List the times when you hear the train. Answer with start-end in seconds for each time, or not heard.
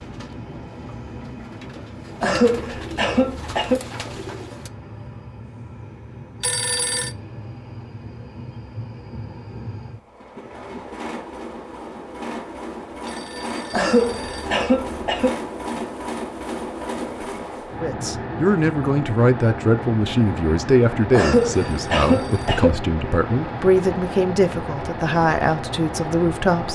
0.0-26.7.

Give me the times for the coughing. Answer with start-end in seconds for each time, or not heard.
2.2-3.8, 13.7-15.3, 21.1-22.7.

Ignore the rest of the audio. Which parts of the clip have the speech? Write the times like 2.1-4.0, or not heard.
17.8-26.7.